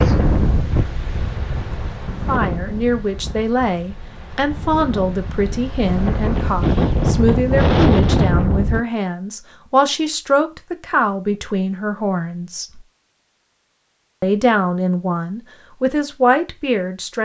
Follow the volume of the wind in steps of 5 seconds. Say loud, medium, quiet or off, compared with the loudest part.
medium, loud, off, off.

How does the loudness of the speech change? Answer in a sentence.
The volume of the speech stays about the same.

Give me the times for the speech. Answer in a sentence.
You can hear the speech from 2.2 to 12.8 s and from 14.2 to 17.2 s.